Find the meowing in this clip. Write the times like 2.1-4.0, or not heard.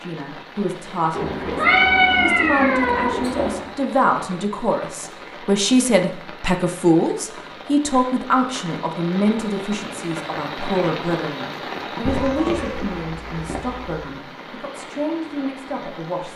1.1-3.7, 12.1-13.9.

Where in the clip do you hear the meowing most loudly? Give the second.
2 s.